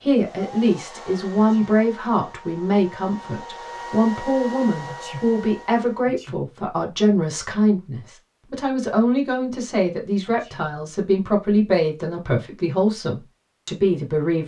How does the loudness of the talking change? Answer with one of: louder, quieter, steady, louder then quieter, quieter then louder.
steady.